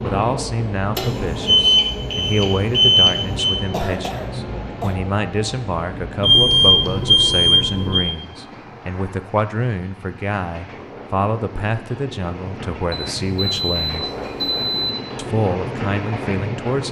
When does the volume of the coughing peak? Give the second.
4 s.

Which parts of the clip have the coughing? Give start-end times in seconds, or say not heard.
3.5-5.0, 14.0-14.7.